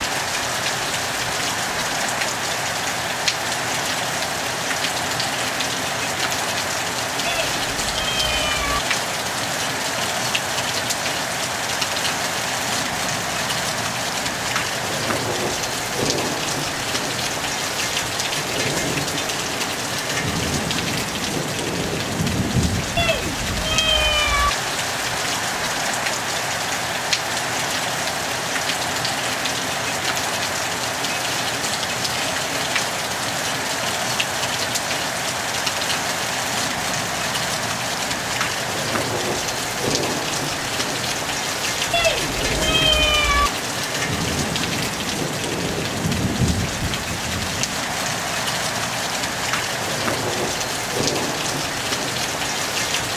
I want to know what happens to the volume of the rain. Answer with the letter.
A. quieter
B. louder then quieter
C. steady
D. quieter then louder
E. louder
C.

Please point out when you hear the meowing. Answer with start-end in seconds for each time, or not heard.
7.2-8.8, 22.9-24.5, 41.9-43.5.